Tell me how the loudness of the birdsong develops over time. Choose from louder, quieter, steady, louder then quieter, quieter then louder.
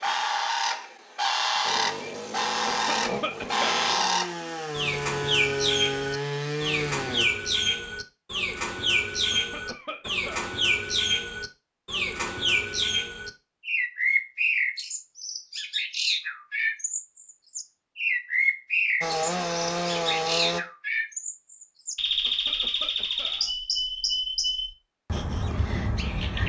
steady.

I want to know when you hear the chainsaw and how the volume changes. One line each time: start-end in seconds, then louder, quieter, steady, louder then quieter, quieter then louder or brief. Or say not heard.
1.6-7.2 louder
19.0-20.6 brief.